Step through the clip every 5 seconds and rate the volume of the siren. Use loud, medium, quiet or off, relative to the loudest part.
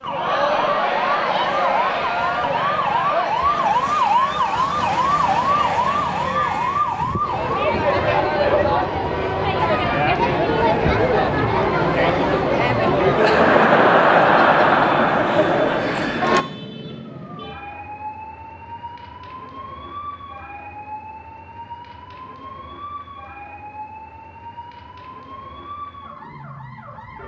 loud, loud, medium, quiet, quiet, quiet.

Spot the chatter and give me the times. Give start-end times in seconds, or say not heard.
0.0-16.4.